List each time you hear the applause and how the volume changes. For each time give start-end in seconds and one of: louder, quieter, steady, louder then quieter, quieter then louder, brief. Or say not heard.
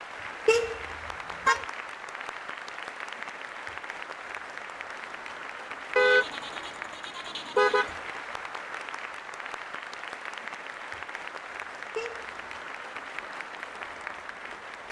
0.0-14.8 steady.